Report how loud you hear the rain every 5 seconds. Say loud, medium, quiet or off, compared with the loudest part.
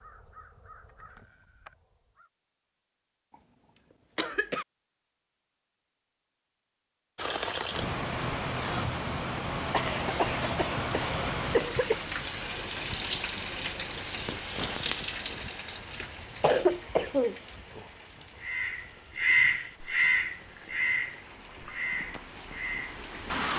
off, loud, loud, medium, medium.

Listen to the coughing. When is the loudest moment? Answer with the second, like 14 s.
17 s.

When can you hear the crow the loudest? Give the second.
19 s.